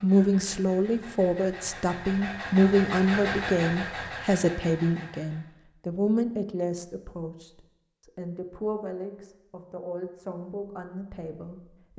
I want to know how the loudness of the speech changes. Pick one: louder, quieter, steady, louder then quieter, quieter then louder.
quieter.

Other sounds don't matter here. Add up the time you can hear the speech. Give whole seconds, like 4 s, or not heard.
12 s.